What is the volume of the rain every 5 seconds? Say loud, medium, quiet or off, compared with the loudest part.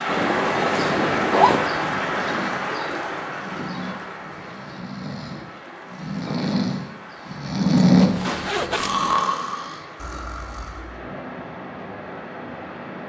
loud, quiet, medium.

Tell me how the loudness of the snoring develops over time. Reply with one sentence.
The loudness of the snoring goes up, then down.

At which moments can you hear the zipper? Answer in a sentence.
The zipper can be heard from 0.1 to 1.8 s and from 7.8 to 9.1 s.